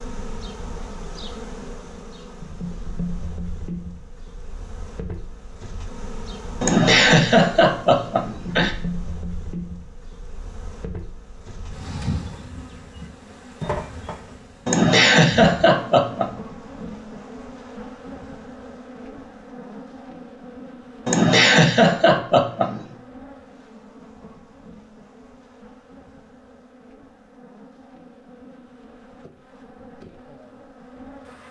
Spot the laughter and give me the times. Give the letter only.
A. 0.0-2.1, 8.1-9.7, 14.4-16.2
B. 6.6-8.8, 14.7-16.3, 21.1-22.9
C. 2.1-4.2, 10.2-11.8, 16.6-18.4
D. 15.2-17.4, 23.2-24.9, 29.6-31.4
B.